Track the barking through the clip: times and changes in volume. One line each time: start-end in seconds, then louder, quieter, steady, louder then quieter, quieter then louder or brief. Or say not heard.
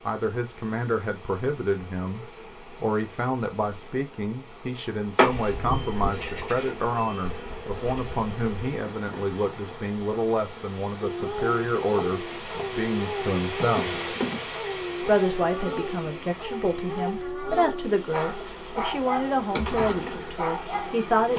11.0-21.0 steady.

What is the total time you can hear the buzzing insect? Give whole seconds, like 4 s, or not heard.
21 s.